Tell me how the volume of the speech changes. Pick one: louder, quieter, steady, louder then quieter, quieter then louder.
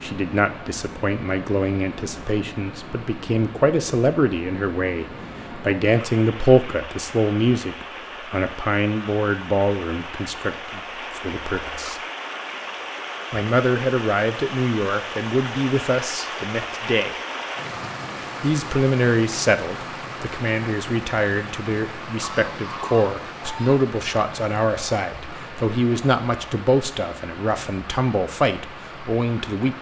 steady.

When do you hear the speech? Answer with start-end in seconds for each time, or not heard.
0.0-12.0, 13.3-17.1, 18.4-29.7.